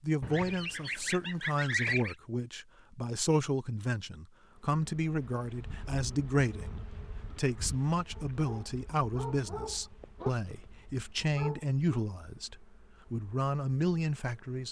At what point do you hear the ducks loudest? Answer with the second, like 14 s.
2 s.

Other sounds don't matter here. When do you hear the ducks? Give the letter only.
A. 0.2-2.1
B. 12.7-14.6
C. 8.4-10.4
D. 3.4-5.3
A.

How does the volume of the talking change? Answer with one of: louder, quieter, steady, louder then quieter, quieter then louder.
steady.